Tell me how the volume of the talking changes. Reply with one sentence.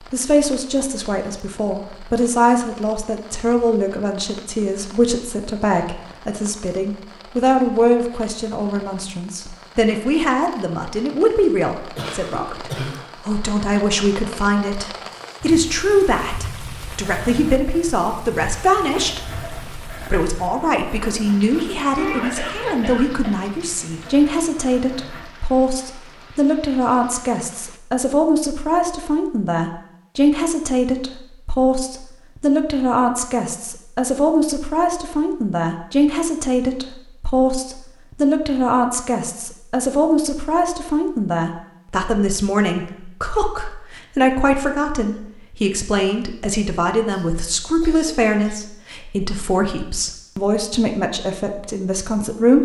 The loudness of the talking stays about the same.